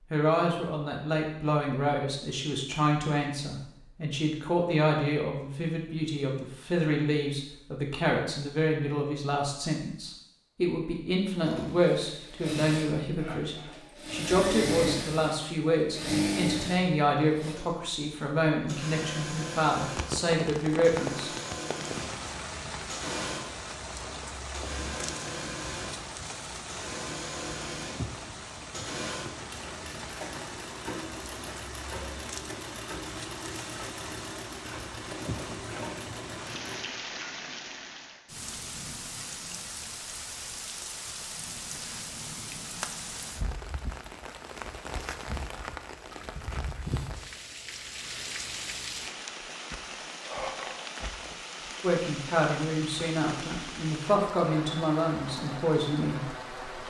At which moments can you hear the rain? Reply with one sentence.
The rain can be heard from 19.8 to 56.8 s.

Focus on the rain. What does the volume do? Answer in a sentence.
The loudness of the rain stays about the same.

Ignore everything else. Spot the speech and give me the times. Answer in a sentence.
You can hear the speech from 0.1 to 21.3 s and from 51.8 to 56.5 s.